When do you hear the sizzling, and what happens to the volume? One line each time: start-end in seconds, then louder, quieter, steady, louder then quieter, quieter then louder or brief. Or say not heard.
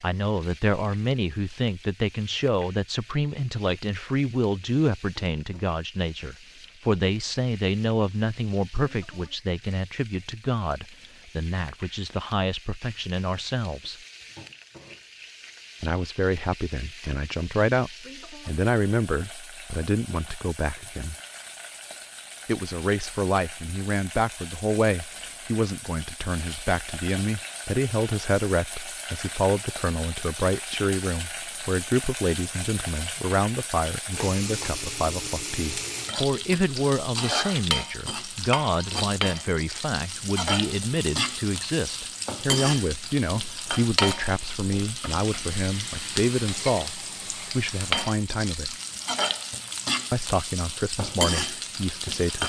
0.0-52.4 louder.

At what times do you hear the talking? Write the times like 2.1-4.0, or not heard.
0.0-13.9, 15.8-21.1, 22.4-48.8, 50.1-52.4.